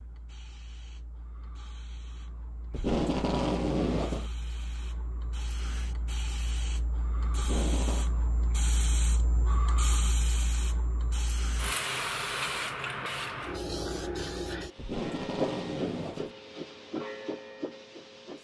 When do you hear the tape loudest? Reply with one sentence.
The volume of the tape peaks at 3 seconds.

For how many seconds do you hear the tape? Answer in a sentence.
You can hear the tape for 4 seconds altogether.